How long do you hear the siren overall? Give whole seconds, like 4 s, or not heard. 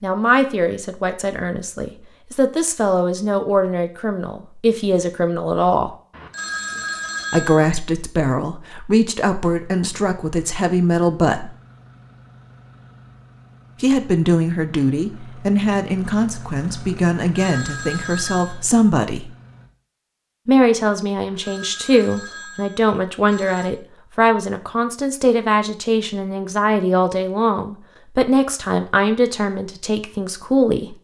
not heard.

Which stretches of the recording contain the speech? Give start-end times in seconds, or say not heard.
0.0-5.9, 7.3-11.5, 13.8-19.3, 20.4-30.9.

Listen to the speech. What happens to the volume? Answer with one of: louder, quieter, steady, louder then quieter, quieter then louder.
steady.